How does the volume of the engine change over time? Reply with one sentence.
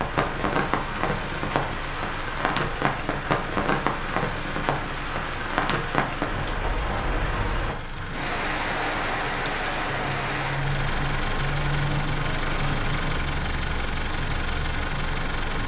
The loudness of the engine goes up.